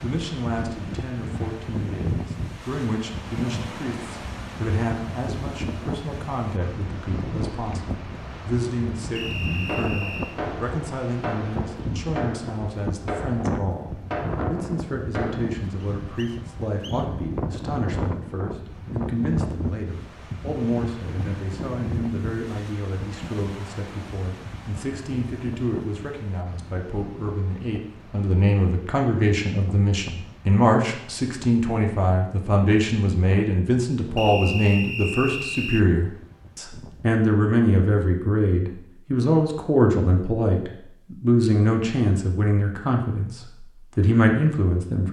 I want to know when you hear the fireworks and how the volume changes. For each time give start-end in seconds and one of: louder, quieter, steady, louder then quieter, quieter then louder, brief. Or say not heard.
9.5-15.4 steady.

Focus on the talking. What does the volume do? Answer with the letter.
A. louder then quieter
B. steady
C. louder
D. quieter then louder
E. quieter
C.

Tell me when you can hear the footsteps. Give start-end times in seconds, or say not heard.
not heard.